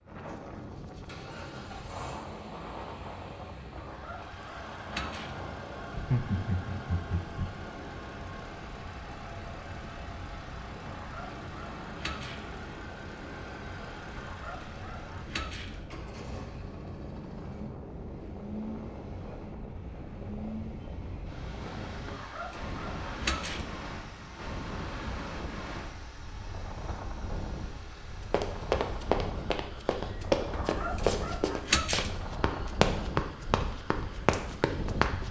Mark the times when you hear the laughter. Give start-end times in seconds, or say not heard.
5.9-7.5.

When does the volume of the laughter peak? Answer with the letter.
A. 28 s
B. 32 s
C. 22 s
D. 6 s
D.